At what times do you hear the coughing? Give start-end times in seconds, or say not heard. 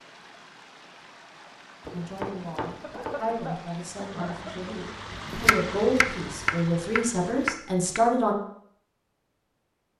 2.8-4.8.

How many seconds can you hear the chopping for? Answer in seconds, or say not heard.
4 s.